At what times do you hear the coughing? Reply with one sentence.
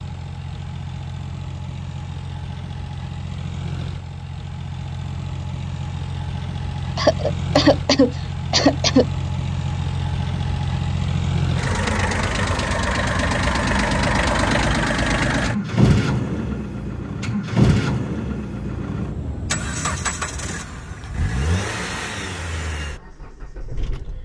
The coughing can be heard from 7.0 to 9.1 s.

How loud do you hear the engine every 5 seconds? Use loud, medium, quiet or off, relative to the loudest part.
medium, medium, loud, loud, medium.